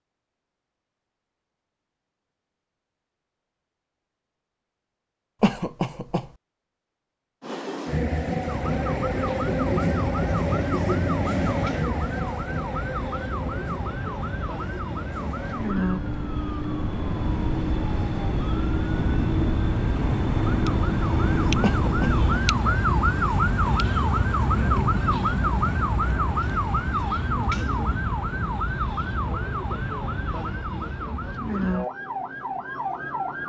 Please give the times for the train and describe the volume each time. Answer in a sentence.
The train can be heard from 7.4 to 22.4 s, getting quieter then louder.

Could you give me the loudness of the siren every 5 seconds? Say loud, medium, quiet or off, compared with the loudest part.
off, medium, medium, medium, loud, loud, medium.